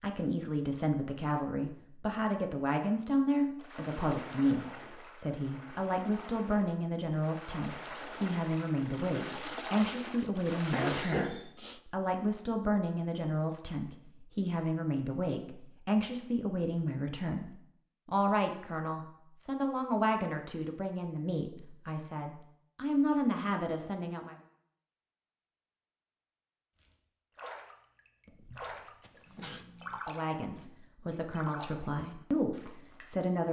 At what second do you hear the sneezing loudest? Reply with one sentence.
The loudest moment of the sneezing is at 11 seconds.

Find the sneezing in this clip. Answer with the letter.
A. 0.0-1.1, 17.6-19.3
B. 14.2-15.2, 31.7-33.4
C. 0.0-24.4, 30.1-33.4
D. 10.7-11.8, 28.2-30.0
D.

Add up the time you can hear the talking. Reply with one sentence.
The talking can be heard for 28 seconds in total.